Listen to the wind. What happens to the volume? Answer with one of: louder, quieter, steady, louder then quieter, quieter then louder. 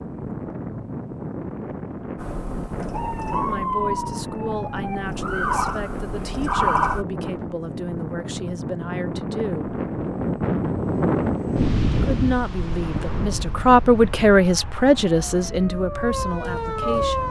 louder then quieter.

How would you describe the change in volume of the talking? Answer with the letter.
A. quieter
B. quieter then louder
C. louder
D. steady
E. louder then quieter
E.